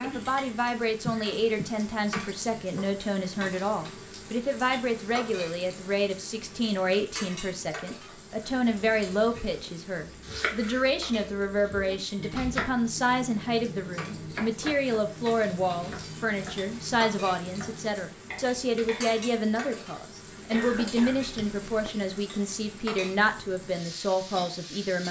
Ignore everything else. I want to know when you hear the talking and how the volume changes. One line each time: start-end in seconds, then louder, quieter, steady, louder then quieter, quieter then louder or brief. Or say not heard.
0.0-25.0 steady.